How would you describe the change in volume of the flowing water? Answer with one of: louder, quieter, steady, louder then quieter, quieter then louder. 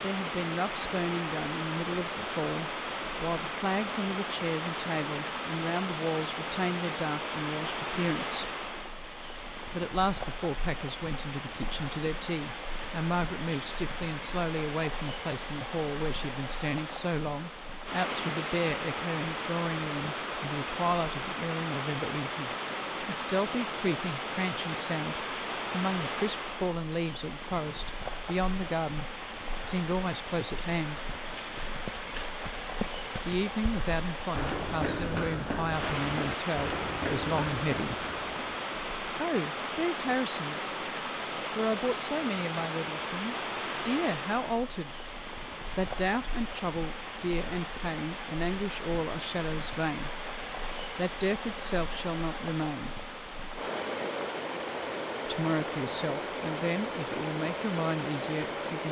steady.